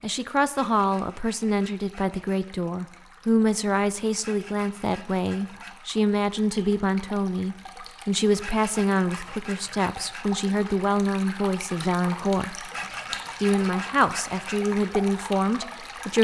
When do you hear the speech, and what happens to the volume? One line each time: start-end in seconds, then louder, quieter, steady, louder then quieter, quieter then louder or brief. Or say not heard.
0.0-12.7 steady
13.4-16.2 brief.